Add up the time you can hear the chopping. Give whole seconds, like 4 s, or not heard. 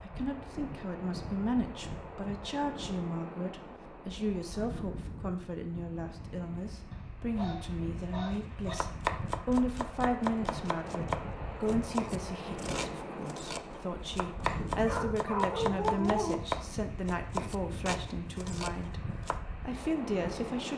11 s.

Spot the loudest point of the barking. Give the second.
16 s.